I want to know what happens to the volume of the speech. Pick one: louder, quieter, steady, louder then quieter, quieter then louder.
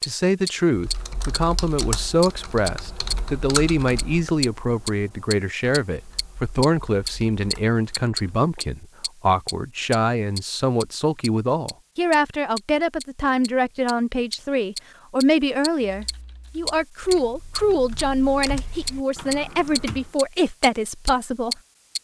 steady.